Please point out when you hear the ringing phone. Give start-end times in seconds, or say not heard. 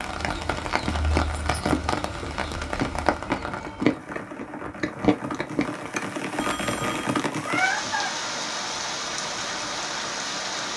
6.3-7.2.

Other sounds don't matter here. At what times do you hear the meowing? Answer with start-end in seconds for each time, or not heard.
7.3-8.2.